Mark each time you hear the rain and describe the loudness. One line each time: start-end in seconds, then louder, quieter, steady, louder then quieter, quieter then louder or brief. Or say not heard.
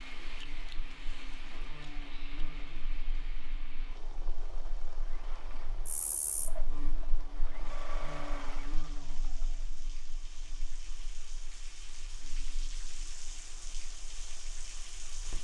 0.0-15.3 quieter then louder.